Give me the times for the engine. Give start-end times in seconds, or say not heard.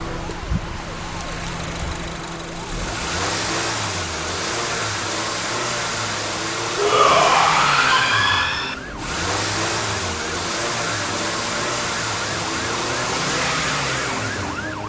0.0-14.8.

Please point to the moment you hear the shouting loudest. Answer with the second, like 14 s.
7 s.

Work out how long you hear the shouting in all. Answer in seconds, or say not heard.
2 s.